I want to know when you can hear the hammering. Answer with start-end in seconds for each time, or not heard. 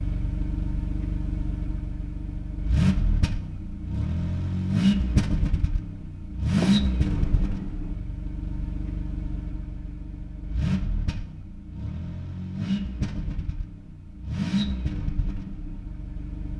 not heard.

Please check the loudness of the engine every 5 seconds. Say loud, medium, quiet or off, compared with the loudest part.
loud, loud, loud, medium.